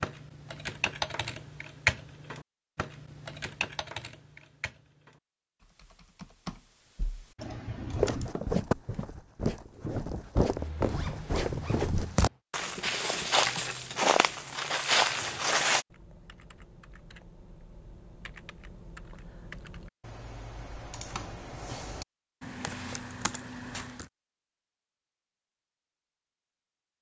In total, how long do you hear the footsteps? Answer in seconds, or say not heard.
8 s.